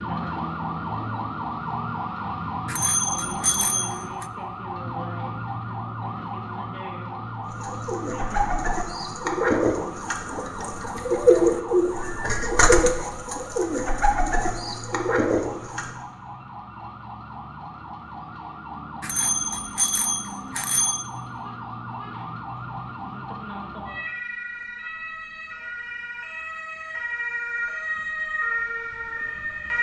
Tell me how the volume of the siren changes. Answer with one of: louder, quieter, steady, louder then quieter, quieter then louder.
quieter then louder.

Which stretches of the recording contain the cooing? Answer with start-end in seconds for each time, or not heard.
7.5-15.9.